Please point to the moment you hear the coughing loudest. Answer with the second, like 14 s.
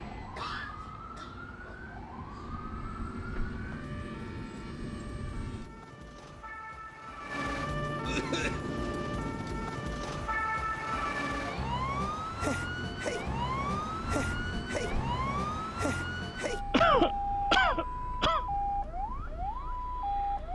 17 s.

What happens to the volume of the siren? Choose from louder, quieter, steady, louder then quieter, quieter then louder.
louder.